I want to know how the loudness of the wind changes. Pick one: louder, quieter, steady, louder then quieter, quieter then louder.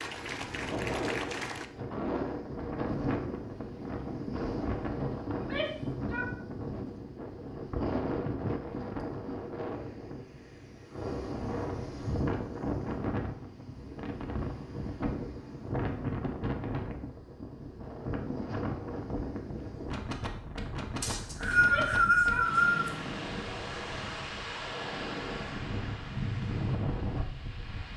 steady.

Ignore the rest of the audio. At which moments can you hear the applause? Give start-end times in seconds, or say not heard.
0.0-1.7.